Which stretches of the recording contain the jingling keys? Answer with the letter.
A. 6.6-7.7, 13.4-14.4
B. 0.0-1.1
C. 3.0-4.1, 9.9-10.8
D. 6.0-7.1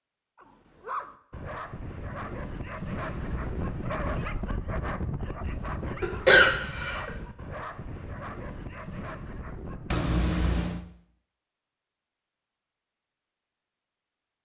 C.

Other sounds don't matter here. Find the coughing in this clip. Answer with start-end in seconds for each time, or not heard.
6.0-7.1.